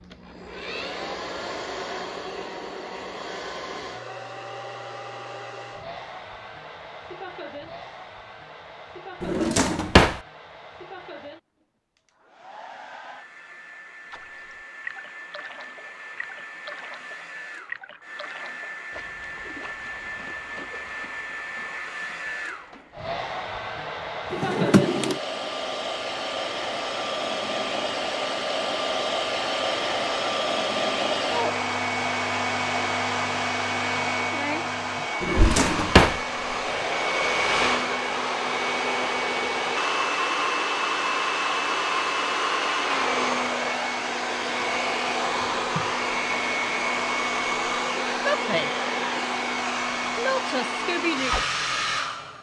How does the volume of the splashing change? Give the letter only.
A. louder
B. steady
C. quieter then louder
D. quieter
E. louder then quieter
D.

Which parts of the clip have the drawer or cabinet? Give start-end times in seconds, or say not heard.
9.2-10.2, 24.4-25.2, 35.2-36.2.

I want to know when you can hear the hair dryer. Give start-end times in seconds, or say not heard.
0.0-52.3.